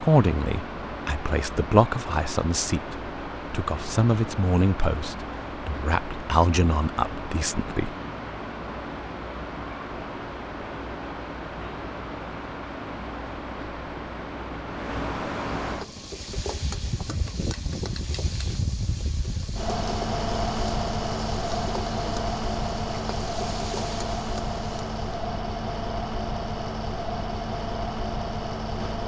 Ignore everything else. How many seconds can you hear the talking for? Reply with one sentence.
You can hear the talking for 8 seconds altogether.